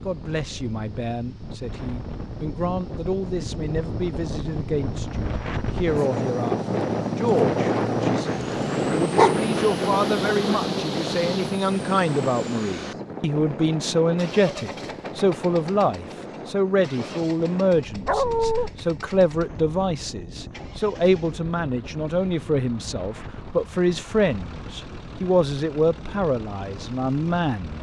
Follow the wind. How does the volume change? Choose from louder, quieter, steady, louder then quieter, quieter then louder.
louder then quieter.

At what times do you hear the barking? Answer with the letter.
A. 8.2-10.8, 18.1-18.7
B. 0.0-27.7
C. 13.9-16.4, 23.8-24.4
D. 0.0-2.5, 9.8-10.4
A.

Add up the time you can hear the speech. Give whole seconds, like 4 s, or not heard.
28 s.